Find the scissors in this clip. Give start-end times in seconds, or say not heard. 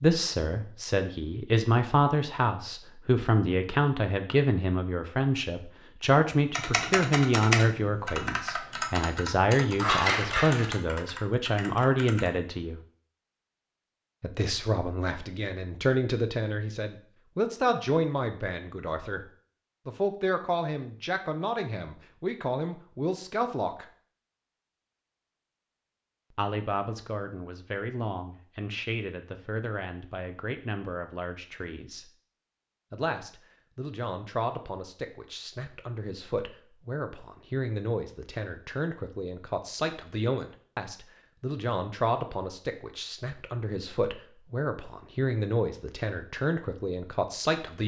9.8-10.7.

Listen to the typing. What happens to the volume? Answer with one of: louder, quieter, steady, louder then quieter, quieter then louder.
quieter.